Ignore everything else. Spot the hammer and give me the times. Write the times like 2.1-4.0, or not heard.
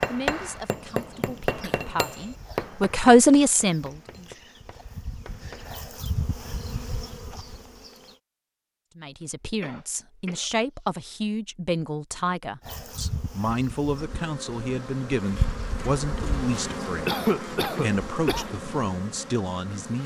0.0-5.8.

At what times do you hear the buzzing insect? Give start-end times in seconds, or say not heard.
0.0-8.2, 12.6-20.0.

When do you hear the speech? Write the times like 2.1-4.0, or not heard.
0.1-4.2, 8.9-20.0.